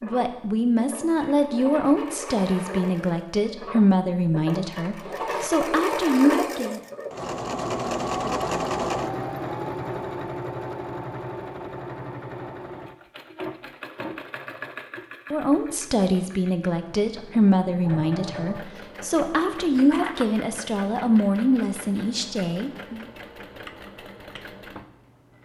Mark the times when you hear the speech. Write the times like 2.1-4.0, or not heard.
0.0-6.8, 15.3-23.1.